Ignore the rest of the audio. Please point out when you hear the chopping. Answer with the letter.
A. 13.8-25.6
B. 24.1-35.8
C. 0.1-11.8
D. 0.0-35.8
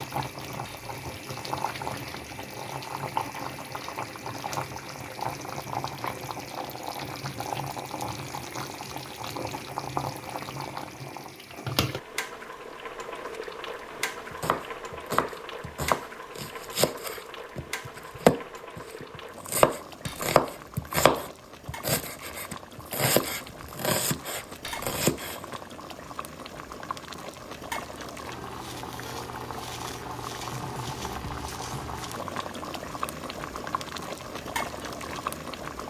A.